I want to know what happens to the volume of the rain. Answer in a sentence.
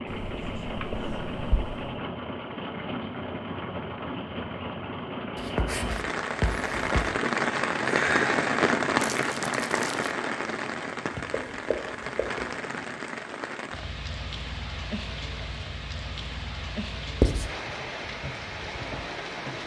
The volume of the rain goes up, then down.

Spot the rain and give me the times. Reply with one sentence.
The rain can be heard from 0.0 to 19.6 s.